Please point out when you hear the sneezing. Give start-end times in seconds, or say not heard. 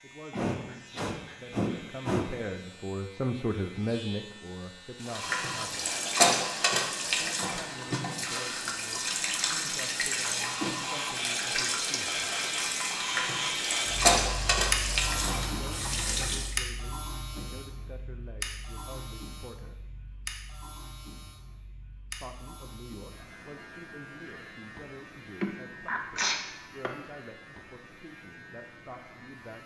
0.3-2.3, 25.4-26.9.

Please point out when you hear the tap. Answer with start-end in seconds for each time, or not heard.
5.0-16.6.